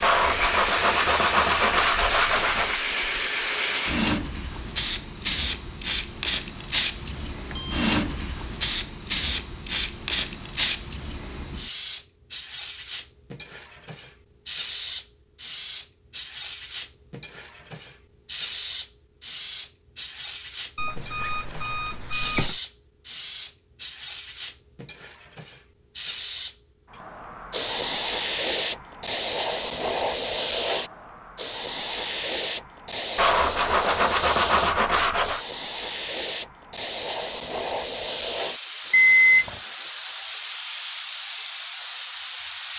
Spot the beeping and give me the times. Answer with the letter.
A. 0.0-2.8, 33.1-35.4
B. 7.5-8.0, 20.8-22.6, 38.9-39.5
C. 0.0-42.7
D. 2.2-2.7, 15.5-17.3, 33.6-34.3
B.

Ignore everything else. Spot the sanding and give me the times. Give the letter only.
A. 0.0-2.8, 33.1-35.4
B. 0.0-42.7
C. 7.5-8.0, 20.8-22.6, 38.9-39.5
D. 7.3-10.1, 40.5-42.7
A.